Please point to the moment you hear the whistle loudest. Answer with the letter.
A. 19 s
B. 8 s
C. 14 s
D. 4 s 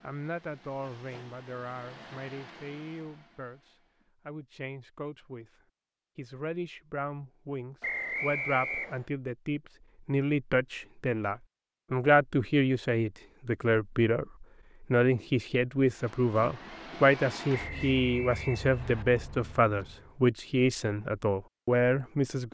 B.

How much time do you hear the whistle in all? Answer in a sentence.
You can hear the whistle for 3 seconds altogether.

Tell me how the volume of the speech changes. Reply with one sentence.
The loudness of the speech goes up.